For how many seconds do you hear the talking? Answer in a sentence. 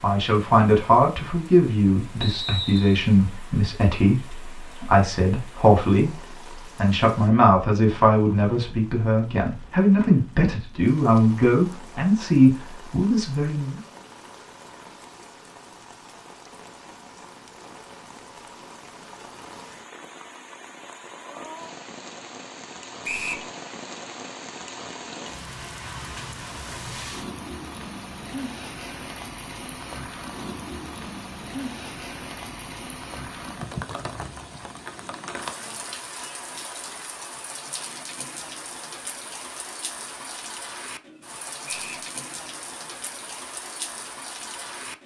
You can hear the talking for 14 seconds altogether.